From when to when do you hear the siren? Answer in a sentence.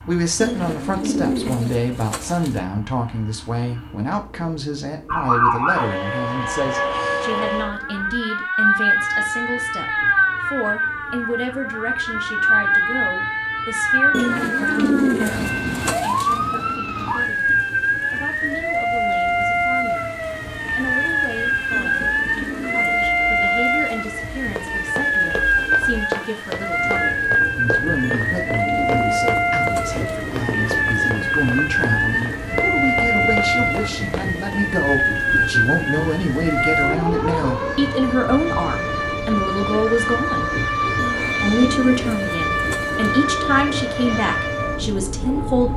You can hear the siren from 5.0 to 45.7 s.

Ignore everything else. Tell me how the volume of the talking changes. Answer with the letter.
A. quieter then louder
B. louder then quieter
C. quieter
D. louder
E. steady
A.